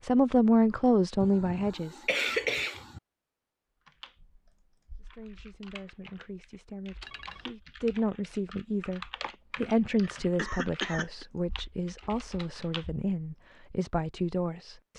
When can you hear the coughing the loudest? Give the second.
2 s.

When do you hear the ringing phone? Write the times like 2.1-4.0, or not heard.
7.0-7.5.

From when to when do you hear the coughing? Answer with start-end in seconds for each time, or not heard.
1.2-3.0, 9.2-11.2.